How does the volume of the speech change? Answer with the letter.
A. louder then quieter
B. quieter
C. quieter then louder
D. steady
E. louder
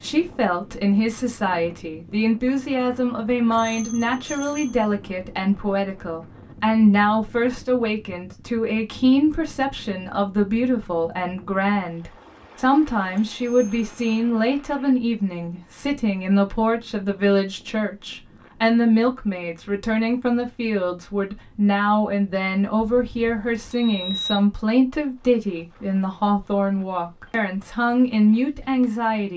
D.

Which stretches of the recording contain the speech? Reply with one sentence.
You can hear the speech from 0.0 to 29.3 s.